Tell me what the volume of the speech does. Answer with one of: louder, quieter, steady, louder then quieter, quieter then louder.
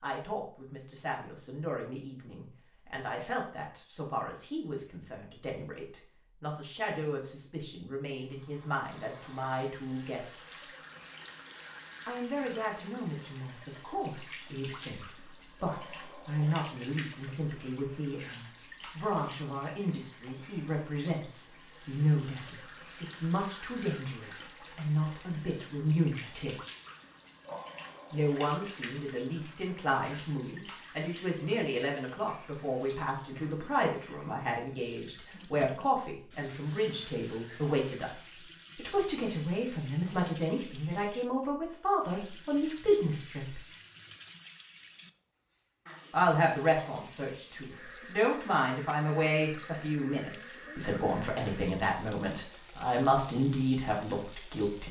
louder.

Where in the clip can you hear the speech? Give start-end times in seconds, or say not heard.
0.0-10.7, 12.1-26.6, 28.1-43.6, 46.1-54.8.